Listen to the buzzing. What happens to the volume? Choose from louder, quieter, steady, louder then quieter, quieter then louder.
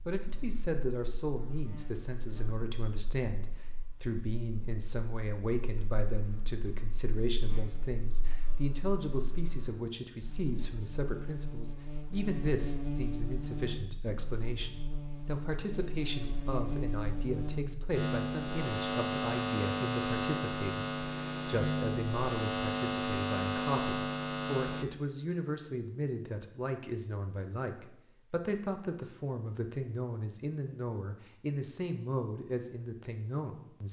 louder.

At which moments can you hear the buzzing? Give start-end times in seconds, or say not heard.
0.0-24.9.